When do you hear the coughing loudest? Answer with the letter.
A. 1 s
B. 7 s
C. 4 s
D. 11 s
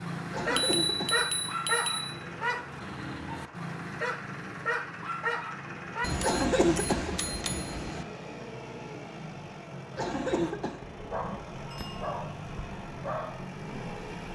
B.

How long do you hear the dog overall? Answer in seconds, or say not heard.
10 s.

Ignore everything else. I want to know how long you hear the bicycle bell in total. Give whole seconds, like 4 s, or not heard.
4 s.